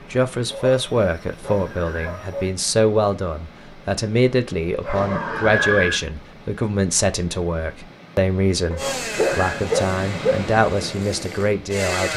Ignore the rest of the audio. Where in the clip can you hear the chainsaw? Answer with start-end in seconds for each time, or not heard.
8.8-12.1.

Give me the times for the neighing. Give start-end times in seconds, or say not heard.
1.4-2.1, 4.9-6.0, 8.8-9.6.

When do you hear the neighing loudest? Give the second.
6 s.